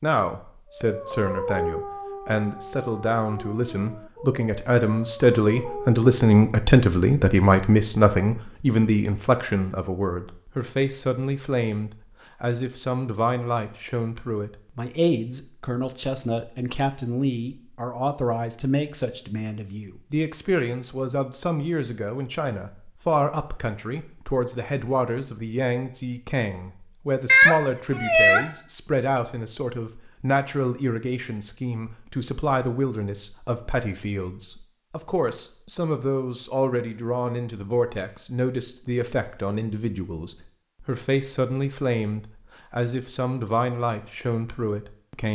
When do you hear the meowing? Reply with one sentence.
You can hear the meowing from 27.2 to 28.4 s.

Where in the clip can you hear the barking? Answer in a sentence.
The barking can be heard from 0.7 to 6.0 s.